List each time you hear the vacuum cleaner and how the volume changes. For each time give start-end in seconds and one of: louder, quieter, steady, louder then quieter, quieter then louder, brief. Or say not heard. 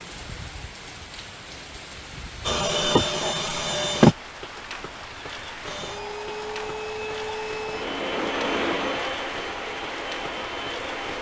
2.4-4.2 brief
5.7-11.1 louder then quieter.